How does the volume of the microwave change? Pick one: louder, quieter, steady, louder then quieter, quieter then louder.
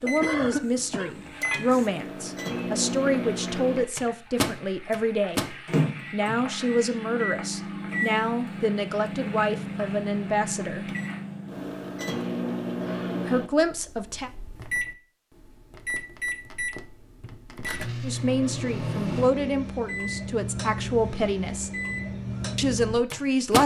steady.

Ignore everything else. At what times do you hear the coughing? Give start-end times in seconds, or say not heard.
0.1-1.1, 12.7-13.2.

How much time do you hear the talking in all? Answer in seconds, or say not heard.
17 s.